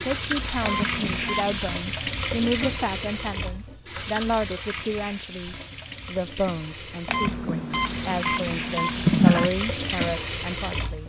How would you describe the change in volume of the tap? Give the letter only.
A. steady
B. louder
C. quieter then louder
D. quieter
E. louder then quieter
C.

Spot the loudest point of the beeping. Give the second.
9 s.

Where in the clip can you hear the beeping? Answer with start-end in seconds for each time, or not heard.
0.6-1.6, 7.0-9.5.